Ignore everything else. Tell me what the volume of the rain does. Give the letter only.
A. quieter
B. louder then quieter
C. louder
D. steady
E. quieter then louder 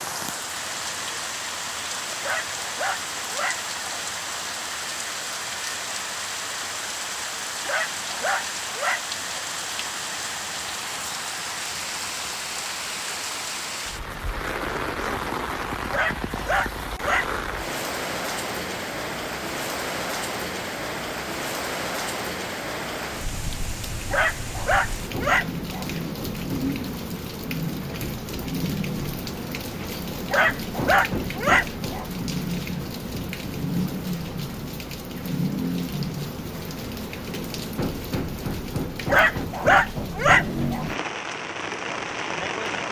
D.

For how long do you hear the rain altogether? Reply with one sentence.
The rain can be heard for 43 seconds in total.